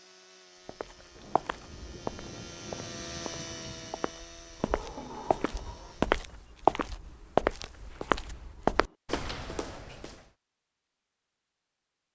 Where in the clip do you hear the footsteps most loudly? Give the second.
7 s.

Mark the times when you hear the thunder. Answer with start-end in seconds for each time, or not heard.
1.1-4.1.